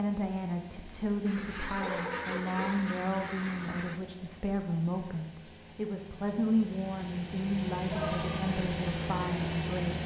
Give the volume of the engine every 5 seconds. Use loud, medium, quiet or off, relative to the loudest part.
quiet, loud.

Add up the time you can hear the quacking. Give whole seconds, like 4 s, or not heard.
3 s.